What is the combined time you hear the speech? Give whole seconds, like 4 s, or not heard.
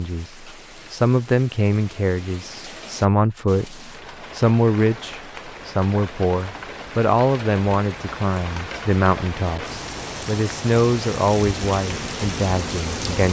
13 s.